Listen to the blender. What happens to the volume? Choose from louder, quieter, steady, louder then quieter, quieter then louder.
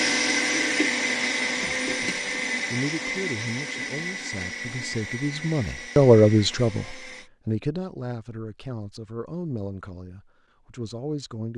quieter.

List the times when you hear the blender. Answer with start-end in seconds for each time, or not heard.
0.0-7.3.